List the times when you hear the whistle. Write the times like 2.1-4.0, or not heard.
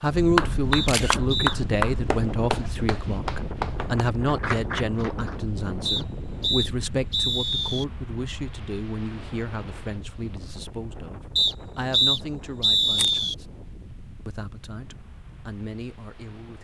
0.7-1.6, 5.8-7.8, 11.3-13.3.